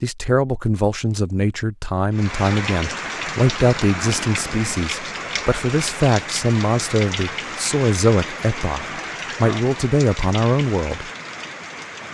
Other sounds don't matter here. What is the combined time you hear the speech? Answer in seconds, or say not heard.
11 s.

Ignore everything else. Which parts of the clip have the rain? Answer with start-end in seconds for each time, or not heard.
2.1-12.0.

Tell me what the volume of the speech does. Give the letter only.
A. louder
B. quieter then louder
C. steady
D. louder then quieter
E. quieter
C.